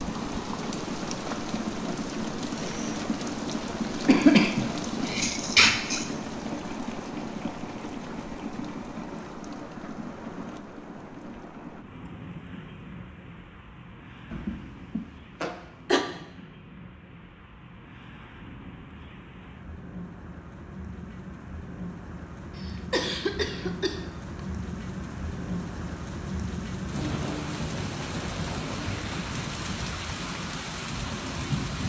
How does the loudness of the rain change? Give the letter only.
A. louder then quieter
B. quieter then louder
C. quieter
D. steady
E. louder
B.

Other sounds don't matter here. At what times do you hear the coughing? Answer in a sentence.
The coughing can be heard from 4.0 to 6.0 s, from 14.3 to 16.1 s and from 22.6 to 24.0 s.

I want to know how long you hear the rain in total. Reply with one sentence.
You can hear the rain for 32 seconds altogether.